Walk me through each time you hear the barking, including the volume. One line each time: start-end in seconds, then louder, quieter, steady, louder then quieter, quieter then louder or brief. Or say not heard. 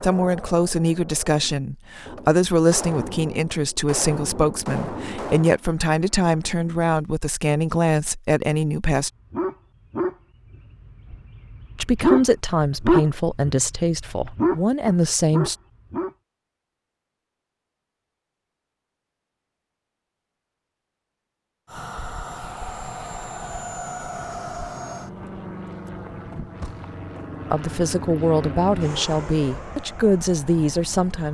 9.3-16.1 louder then quieter.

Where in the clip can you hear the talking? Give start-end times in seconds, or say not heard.
0.0-9.1, 11.8-15.6, 27.5-31.3.